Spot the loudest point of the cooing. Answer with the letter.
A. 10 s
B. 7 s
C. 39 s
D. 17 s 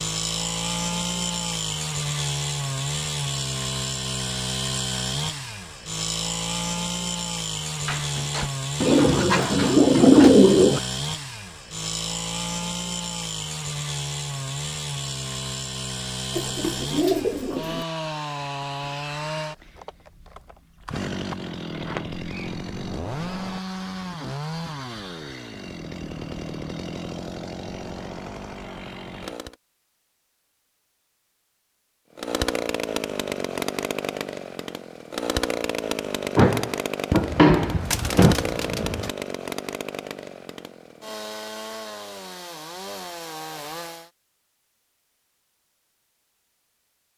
A.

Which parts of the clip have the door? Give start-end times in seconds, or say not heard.
7.8-8.5, 21.7-23.6, 36.4-38.4.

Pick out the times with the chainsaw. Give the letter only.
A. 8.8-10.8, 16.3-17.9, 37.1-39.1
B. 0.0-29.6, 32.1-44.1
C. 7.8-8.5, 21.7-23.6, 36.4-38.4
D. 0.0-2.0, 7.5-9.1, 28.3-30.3
B.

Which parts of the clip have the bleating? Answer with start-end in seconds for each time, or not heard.
not heard.